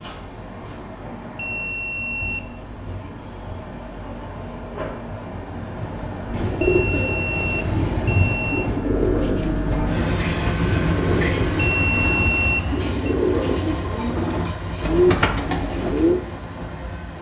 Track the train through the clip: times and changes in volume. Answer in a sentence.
You can hear the train from 0.0 to 17.1 s, getting louder then quieter.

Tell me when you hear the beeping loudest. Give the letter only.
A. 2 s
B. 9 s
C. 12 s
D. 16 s
C.